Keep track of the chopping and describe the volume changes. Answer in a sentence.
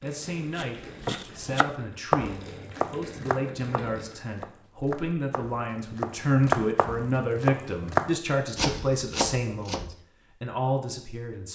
The loudness of the chopping goes down, then up.